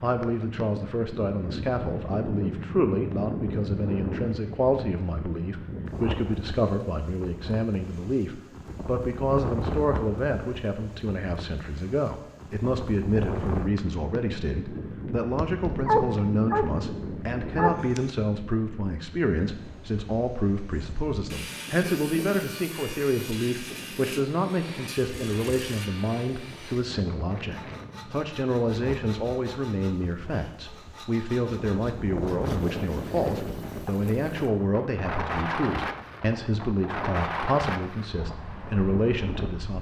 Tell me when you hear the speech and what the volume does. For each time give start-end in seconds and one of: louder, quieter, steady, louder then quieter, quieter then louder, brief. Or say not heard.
0.0-39.7 steady.